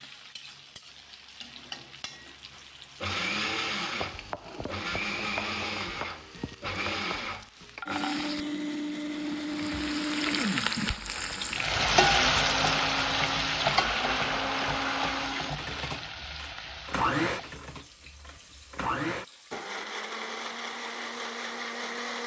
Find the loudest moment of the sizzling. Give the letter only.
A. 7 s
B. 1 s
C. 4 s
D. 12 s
D.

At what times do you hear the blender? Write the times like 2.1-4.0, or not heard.
3.0-22.2.